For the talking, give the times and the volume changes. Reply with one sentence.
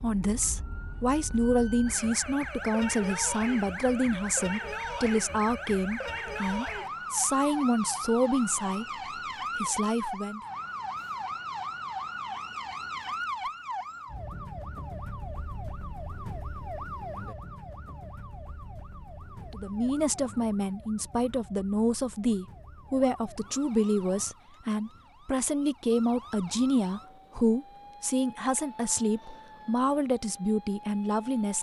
The talking can be heard from 0.0 to 8.8 s, at a steady volume; briefly from 9.6 to 10.4 s; and from 19.5 to 31.5 s, at a steady volume.